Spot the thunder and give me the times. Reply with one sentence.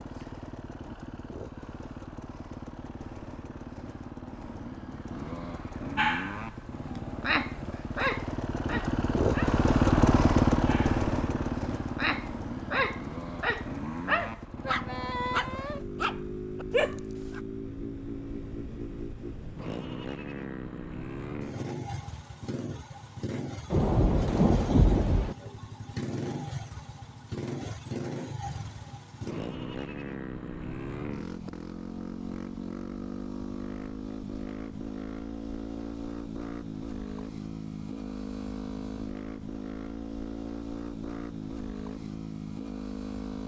The thunder can be heard from 23.7 to 25.4 s.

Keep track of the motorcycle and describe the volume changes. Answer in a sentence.
The loudness of the motorcycle goes up, then down.